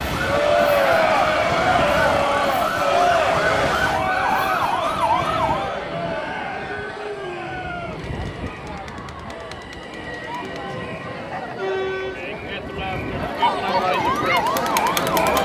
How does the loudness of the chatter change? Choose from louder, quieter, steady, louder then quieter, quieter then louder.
quieter then louder.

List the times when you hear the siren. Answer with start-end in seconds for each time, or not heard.
0.0-5.8, 13.8-15.3.